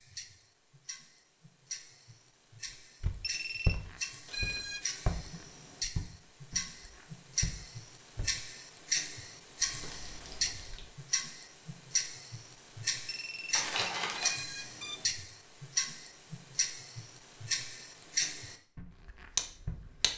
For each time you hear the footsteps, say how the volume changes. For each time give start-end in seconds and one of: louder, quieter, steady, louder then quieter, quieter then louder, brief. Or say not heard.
3.0-8.3 quieter then louder
18.8-19.9 brief.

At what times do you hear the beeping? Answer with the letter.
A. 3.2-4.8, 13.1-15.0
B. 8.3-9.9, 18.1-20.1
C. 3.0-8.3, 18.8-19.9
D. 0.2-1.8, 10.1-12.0
A.